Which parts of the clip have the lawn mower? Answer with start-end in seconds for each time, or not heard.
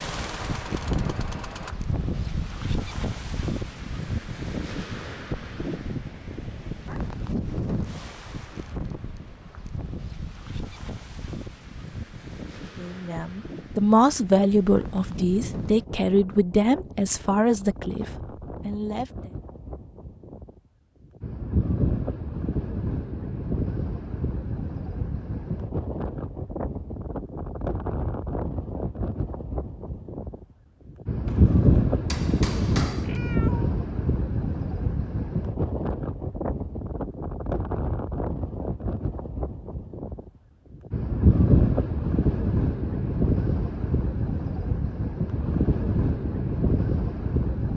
0.0-1.8.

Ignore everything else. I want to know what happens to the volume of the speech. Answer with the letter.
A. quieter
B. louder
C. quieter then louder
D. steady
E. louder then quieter
A.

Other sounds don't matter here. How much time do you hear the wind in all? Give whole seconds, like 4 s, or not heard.
48 s.